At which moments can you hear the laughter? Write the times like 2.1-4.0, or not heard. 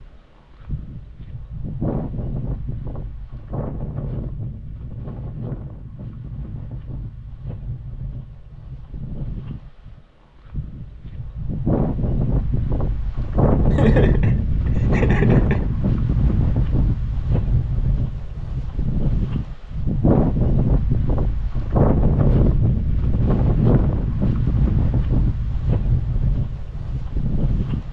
13.7-15.7.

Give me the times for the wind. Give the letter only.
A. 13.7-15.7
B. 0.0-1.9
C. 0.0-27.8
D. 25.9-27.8
C.